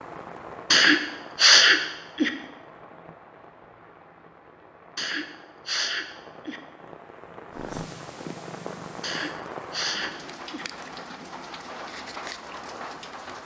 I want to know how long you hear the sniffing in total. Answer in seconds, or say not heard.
5 s.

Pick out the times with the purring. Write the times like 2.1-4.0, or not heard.
7.5-9.4.